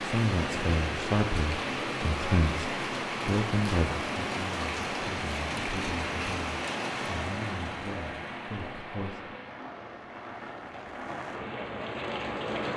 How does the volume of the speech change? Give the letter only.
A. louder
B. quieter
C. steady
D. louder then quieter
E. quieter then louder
B.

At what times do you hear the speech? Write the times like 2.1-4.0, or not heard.
0.0-9.2.